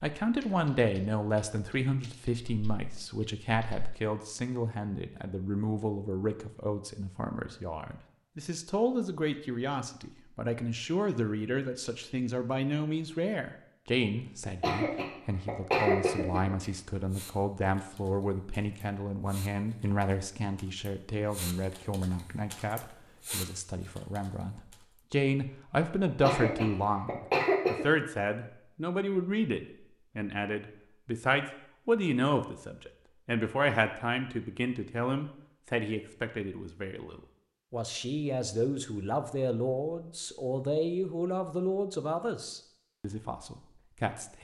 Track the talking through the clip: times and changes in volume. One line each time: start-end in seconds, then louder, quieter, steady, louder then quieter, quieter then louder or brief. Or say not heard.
0.0-44.4 steady.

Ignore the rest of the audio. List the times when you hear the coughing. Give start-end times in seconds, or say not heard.
14.4-16.5, 26.1-27.9.